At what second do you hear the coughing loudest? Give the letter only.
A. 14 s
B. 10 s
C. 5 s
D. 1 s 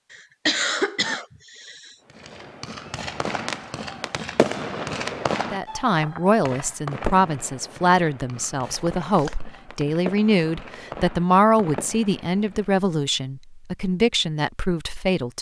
D.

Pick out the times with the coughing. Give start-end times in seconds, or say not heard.
0.1-1.9, 8.6-9.3.